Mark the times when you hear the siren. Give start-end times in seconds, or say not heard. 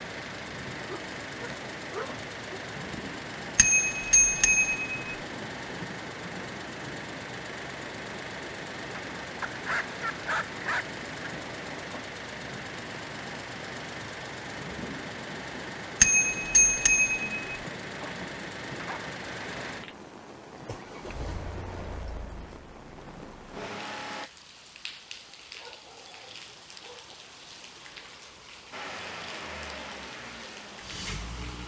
not heard.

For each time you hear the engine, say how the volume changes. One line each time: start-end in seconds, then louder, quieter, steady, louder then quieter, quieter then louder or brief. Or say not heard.
0.0-24.3 steady
28.7-31.6 brief.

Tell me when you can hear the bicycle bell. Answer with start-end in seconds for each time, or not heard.
3.5-5.0, 16.0-17.4.